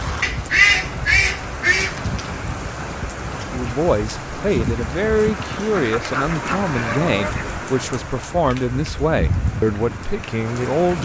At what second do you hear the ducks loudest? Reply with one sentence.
The volume of the ducks peaks at 1 second.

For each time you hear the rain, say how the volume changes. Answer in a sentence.
The rain can be heard from 0.0 to 11.0 s, at a steady volume.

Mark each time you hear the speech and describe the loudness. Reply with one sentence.
The speech can be heard from 3.5 to 11.0 s, at a steady volume.